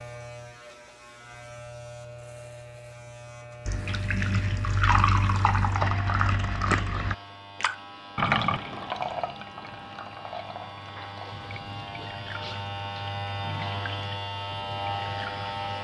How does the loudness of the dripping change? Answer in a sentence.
The loudness of the dripping goes down.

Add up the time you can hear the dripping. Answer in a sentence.
You can hear the dripping for 12 seconds altogether.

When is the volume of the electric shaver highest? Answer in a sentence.
The loudest moment of the electric shaver is at 15 seconds.